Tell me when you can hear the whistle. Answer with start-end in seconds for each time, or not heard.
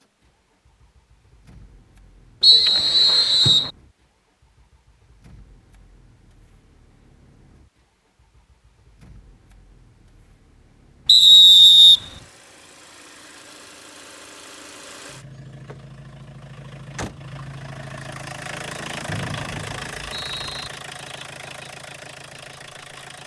2.4-3.7, 11.1-12.0, 19.1-20.7.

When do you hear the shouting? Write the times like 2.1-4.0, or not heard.
not heard.